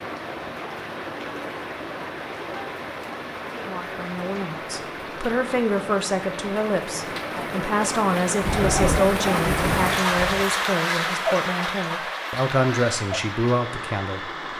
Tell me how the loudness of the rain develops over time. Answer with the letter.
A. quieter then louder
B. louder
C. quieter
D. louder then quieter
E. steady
D.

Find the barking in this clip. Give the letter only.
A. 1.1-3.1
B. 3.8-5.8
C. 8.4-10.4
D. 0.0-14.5
C.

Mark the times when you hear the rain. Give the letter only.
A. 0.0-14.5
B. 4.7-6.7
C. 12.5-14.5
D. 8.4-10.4
A.